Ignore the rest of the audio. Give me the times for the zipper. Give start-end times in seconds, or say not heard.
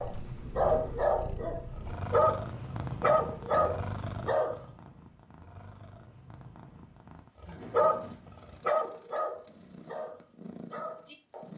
not heard.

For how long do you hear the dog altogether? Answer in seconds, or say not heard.
9 s.